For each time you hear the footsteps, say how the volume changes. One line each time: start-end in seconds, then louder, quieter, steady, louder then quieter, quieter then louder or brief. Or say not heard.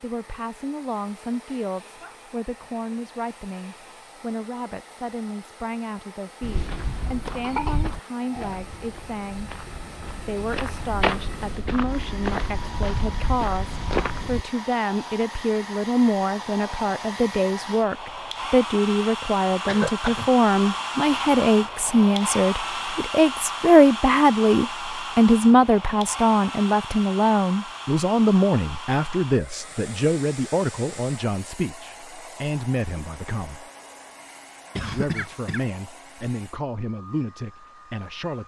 6.4-14.4 quieter then louder.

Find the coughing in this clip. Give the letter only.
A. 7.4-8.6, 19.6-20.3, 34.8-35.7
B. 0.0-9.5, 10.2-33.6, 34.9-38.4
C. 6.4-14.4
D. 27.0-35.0
A.